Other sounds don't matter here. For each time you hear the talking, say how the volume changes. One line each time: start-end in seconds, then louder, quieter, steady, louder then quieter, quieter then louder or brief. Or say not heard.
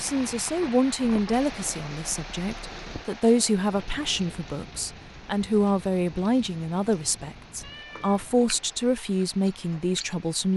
0.0-10.5 steady.